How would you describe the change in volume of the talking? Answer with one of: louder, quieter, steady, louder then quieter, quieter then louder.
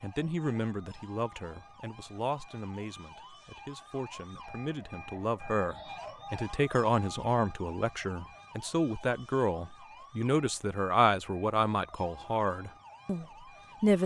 louder.